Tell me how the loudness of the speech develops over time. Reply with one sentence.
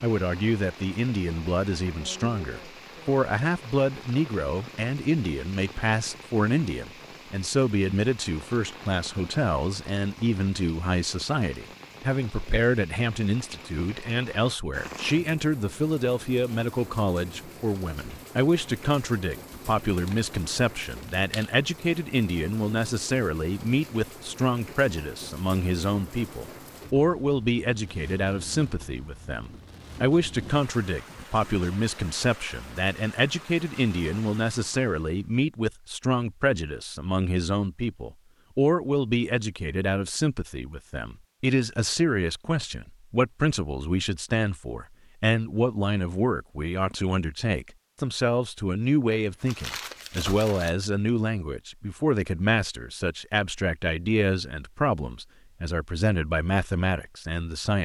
The loudness of the speech stays about the same.